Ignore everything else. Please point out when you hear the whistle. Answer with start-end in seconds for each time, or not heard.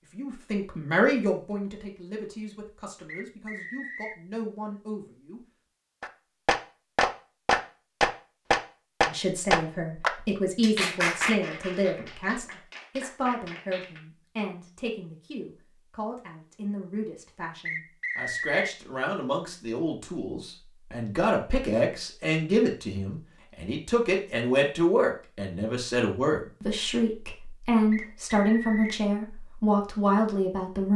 3.0-4.2, 17.6-18.8, 27.9-29.1.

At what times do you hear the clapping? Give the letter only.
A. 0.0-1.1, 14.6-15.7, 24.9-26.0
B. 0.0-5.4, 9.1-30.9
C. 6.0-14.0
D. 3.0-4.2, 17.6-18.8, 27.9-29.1
C.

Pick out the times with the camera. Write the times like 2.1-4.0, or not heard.
not heard.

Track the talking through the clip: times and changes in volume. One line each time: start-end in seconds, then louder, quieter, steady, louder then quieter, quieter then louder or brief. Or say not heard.
0.0-5.4 quieter then louder
9.1-30.9 quieter then louder.